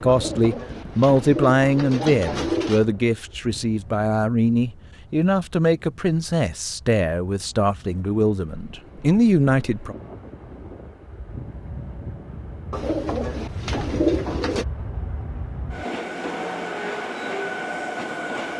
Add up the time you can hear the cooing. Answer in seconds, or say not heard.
5 s.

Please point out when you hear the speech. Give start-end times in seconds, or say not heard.
0.0-9.9.